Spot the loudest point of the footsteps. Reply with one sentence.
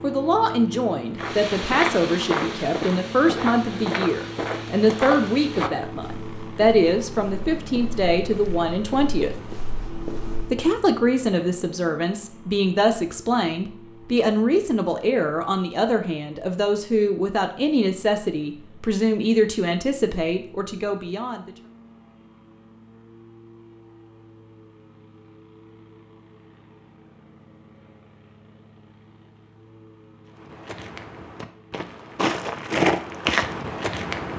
The loudest moment of the footsteps is at 33 seconds.